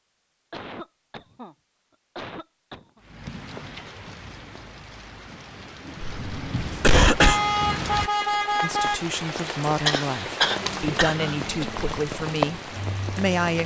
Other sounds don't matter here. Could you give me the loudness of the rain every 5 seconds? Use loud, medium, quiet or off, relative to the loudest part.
medium, loud, loud.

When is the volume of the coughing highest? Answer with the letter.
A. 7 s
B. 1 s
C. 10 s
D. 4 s
A.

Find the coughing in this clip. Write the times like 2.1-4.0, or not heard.
0.5-1.6, 2.1-3.0, 6.0-7.4, 9.4-11.3.